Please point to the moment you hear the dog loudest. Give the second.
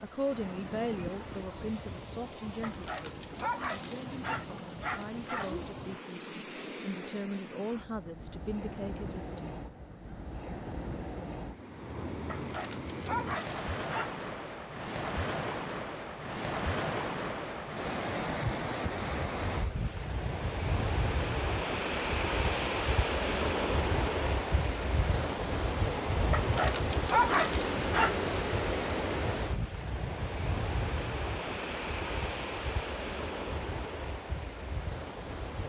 27 s.